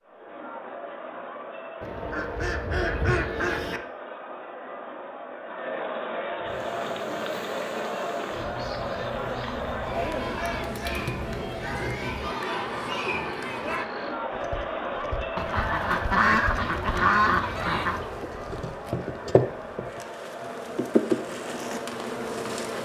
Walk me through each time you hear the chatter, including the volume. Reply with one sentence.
The chatter can be heard from 0.0 to 22.8 s, getting louder then quieter.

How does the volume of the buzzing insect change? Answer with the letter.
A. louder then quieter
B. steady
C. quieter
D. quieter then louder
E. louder
E.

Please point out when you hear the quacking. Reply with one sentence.
The quacking can be heard from 1.8 to 3.8 s and from 15.3 to 18.1 s.